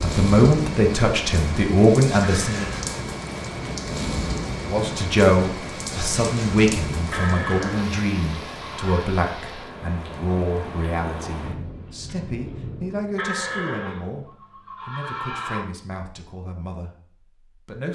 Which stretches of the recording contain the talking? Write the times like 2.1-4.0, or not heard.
0.0-2.7, 4.7-17.9.